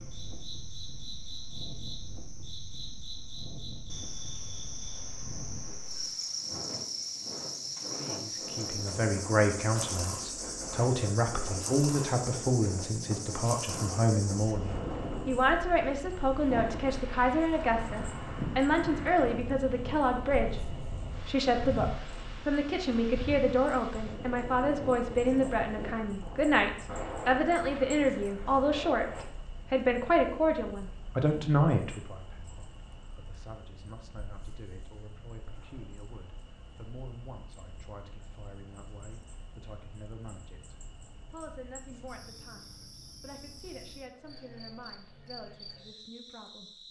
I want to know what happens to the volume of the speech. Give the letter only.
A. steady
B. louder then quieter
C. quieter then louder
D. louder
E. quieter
E.